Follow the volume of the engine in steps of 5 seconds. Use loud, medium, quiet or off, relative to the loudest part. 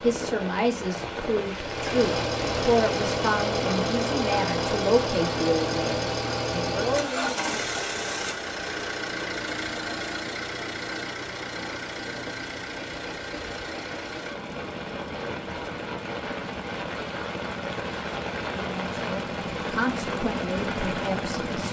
loud, loud, medium, medium, medium.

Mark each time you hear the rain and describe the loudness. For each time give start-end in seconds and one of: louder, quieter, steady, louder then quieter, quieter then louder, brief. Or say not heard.
0.0-21.6 quieter then louder.